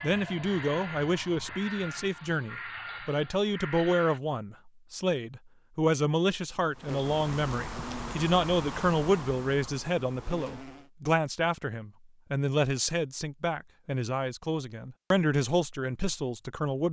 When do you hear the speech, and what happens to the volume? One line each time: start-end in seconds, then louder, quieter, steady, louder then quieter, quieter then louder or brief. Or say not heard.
0.0-16.8 steady.